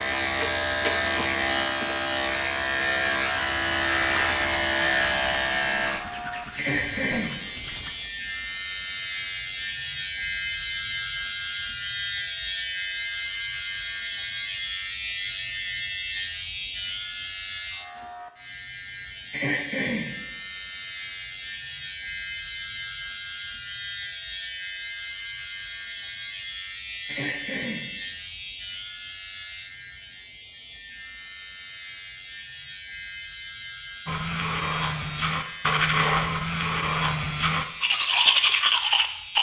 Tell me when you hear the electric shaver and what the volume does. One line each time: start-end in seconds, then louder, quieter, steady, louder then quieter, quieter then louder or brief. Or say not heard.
0.0-39.3 quieter.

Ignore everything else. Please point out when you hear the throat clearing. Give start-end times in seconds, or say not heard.
6.5-7.4, 19.3-20.1, 27.1-27.9.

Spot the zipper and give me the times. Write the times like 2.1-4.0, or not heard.
not heard.